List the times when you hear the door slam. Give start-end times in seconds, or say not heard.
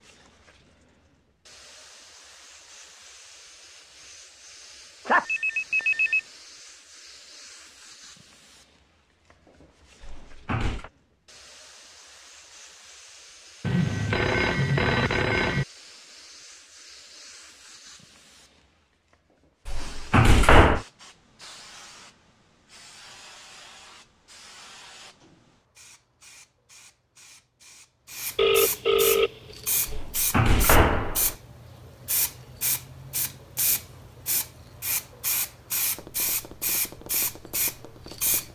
10.0-10.9, 19.6-20.8, 29.9-31.4.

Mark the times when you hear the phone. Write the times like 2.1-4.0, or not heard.
5.0-6.2, 13.6-15.7, 28.4-30.0.